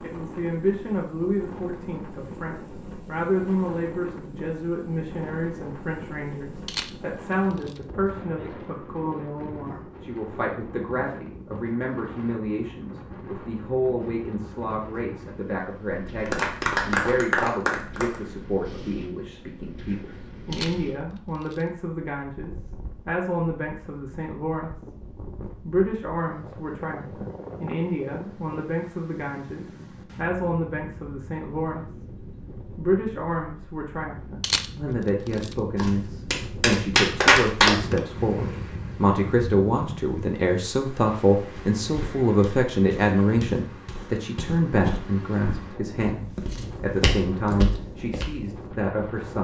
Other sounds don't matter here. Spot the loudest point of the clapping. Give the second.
37 s.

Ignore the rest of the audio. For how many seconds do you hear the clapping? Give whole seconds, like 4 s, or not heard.
4 s.